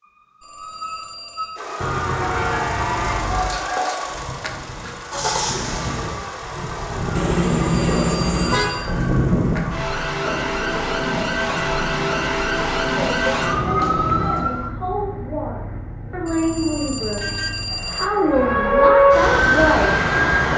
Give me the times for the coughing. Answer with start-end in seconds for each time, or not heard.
not heard.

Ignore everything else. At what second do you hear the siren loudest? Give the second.
19 s.